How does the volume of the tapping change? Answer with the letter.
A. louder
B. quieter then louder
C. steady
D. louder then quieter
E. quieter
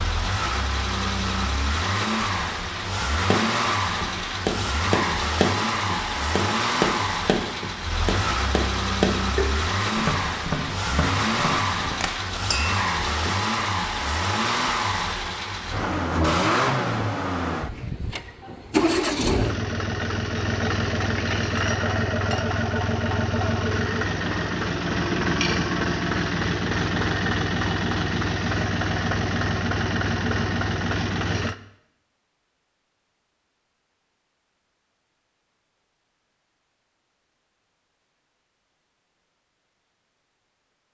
E.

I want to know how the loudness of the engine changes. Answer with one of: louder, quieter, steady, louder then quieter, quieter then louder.
steady.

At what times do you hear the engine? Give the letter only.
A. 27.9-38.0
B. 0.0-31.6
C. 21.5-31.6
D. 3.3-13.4
B.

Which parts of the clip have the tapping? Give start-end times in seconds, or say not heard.
3.3-13.4.